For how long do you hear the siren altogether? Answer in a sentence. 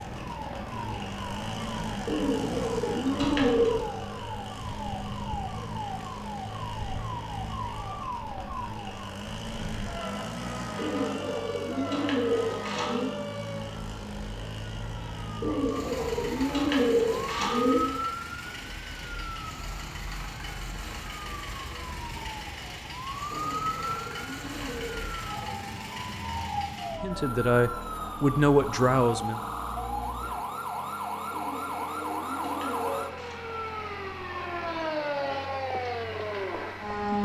The siren can be heard for 37 seconds in total.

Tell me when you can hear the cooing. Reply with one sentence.
You can hear the cooing from 2.0 to 3.9 s, from 10.8 to 13.1 s, from 15.4 to 17.8 s, from 23.3 to 25.2 s and from 31.3 to 33.4 s.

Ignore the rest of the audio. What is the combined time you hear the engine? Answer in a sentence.
You can hear the engine for 37 seconds altogether.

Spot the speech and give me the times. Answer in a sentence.
The speech can be heard from 27.0 to 29.4 s.